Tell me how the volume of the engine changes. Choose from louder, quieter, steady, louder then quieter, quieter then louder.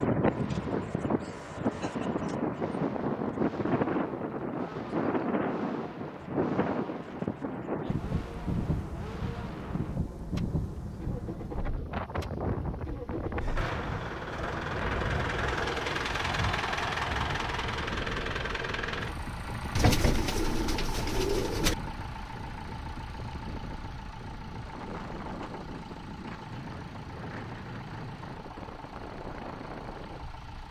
louder then quieter.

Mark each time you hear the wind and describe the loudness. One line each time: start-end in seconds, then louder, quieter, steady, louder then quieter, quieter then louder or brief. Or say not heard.
0.0-30.6 quieter.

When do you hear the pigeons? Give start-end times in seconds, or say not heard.
19.8-21.8.